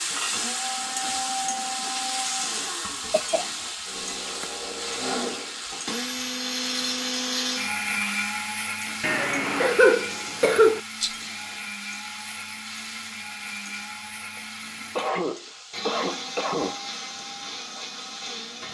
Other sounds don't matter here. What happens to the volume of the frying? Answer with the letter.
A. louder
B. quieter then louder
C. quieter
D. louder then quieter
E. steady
C.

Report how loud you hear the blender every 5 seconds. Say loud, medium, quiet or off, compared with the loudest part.
medium, loud, medium, medium.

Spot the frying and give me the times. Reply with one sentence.
The frying can be heard from 0.0 to 18.6 s.